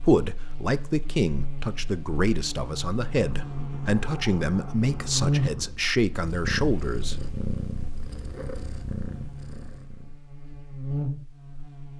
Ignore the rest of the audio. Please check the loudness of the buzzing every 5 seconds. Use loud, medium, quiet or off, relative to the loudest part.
medium, loud, loud.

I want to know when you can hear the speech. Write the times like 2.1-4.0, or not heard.
0.0-7.2.